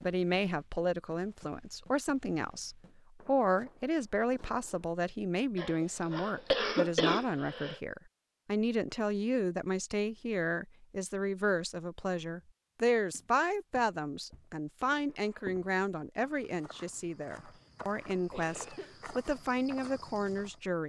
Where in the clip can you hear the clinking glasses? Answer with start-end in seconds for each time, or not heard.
not heard.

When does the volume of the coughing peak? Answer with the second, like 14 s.
7 s.